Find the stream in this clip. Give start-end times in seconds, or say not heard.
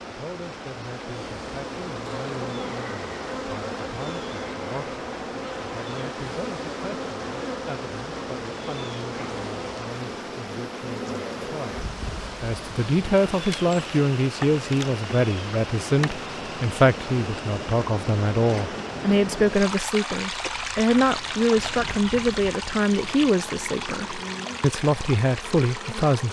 0.0-26.2.